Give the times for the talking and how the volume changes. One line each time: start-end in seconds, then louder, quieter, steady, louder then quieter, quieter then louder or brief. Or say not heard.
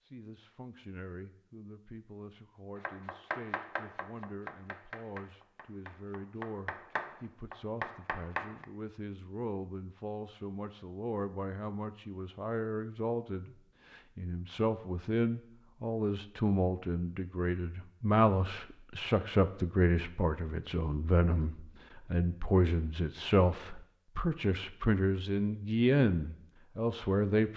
0.1-27.5 louder.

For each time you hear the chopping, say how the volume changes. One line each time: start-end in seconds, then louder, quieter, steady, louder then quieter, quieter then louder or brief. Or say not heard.
2.8-8.7 quieter then louder.